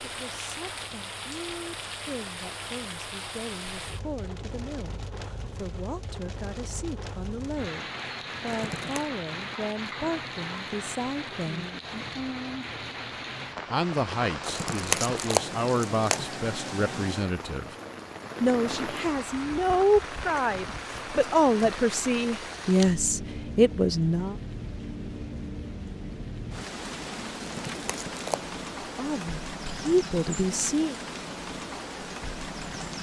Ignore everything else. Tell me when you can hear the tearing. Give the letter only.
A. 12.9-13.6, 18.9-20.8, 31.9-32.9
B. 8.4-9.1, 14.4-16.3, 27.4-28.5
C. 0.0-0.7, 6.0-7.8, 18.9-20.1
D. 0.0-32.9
B.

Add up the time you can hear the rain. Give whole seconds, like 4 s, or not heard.
33 s.